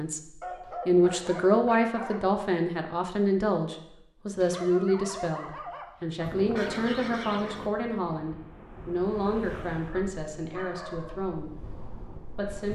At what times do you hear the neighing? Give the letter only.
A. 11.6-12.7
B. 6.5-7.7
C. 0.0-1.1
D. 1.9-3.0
B.